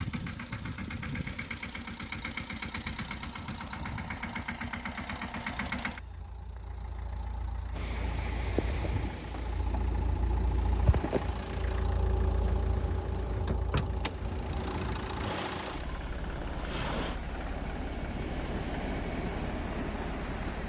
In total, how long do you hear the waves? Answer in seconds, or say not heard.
13 s.